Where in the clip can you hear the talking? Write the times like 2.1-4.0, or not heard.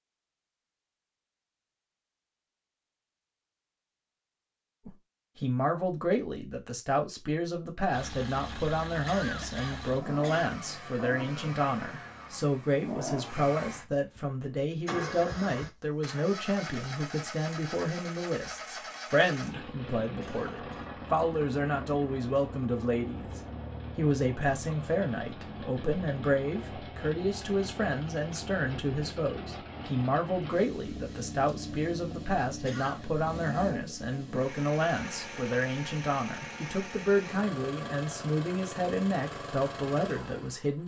4.8-40.8.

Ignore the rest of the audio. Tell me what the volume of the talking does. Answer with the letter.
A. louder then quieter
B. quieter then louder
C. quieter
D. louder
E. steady
E.